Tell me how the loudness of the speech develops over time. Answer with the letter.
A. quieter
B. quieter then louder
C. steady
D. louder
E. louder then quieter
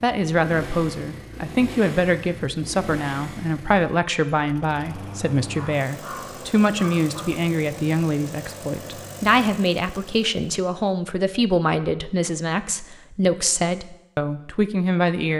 C.